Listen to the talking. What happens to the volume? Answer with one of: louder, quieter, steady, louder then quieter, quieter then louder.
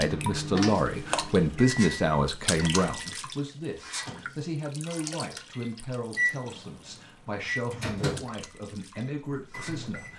quieter.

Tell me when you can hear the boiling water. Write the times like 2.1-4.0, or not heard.
not heard.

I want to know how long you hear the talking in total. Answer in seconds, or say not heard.
10 s.